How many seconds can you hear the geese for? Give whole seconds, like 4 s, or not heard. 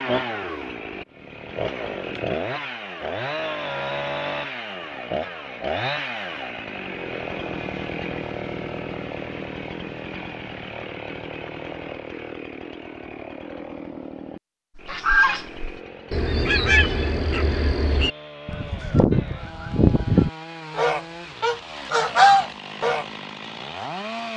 8 s.